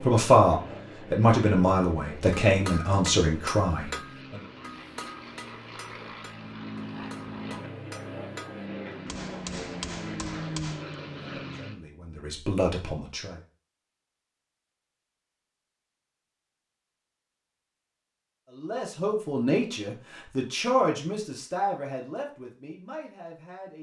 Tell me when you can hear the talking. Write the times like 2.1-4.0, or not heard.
0.0-4.4, 11.4-13.4, 18.6-23.7.